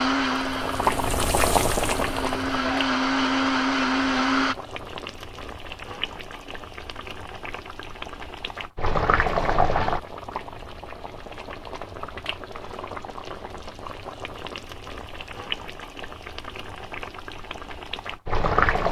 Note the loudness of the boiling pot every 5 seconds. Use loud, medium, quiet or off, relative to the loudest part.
loud, loud, medium, loud.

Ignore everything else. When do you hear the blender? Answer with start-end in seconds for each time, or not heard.
0.0-4.5.